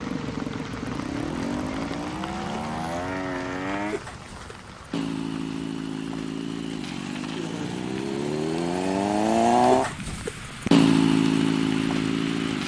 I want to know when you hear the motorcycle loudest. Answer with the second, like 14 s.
11 s.